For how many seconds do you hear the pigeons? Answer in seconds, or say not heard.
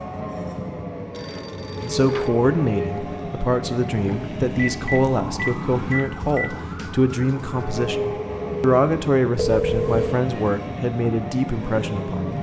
not heard.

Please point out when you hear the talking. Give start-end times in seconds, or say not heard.
1.8-12.3.